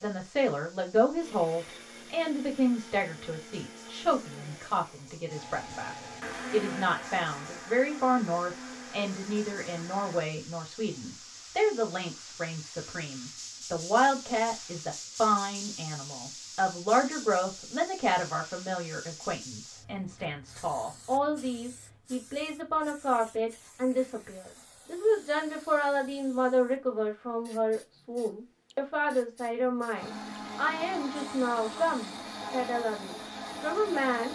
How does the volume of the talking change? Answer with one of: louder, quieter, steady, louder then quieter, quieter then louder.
steady.